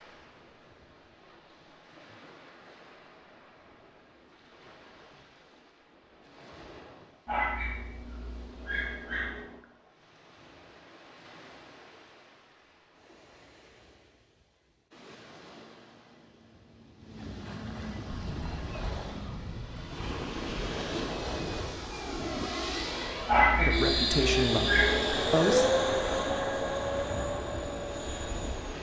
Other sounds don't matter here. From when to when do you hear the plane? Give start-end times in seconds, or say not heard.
18.1-28.7.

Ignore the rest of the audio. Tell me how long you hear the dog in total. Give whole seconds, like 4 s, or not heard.
4 s.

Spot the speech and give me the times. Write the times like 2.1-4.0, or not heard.
23.6-25.7.